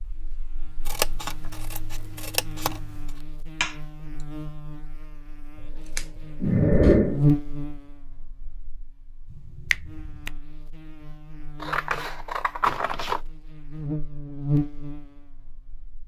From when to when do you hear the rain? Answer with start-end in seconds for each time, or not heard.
not heard.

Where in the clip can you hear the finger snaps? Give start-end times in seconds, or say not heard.
3.6-4.2, 9.3-10.3.